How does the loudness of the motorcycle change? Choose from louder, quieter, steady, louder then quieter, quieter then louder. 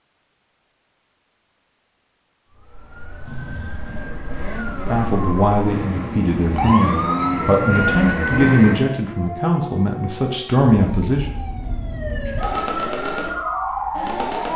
louder.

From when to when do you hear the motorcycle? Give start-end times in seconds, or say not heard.
3.2-8.8.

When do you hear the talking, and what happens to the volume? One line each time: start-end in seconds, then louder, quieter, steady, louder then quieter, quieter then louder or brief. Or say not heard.
4.8-11.2 steady.